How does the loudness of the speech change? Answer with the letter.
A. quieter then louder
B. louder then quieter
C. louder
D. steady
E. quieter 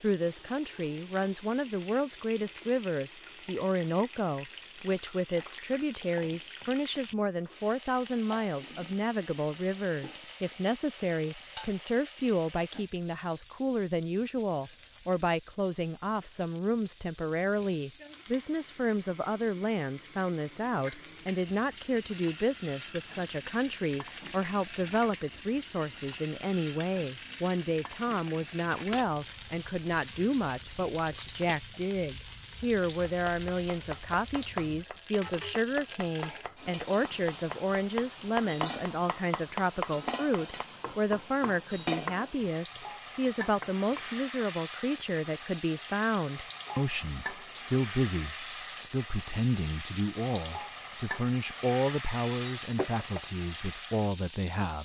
D.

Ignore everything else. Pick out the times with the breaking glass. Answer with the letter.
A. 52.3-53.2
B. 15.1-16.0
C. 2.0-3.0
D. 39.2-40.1
A.